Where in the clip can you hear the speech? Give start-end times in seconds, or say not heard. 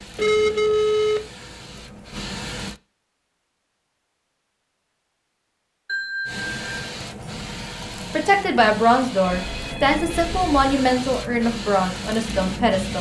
8.1-12.9.